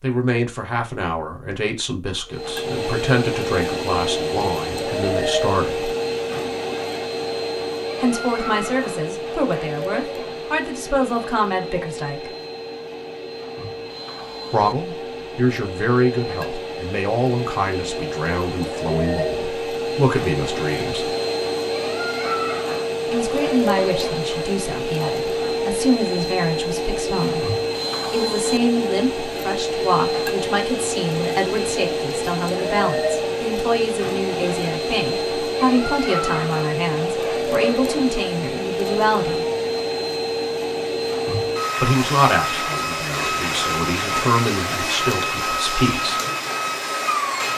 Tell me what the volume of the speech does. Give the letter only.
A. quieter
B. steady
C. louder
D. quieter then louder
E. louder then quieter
B.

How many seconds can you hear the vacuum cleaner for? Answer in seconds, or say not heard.
45 s.